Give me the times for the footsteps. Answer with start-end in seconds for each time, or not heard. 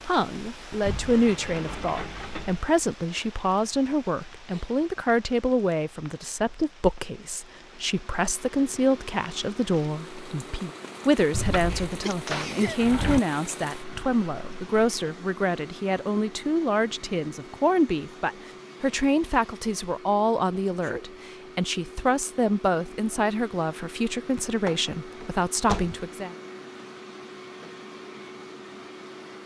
not heard.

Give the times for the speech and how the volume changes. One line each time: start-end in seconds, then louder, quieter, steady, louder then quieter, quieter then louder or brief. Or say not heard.
0.1-26.4 steady.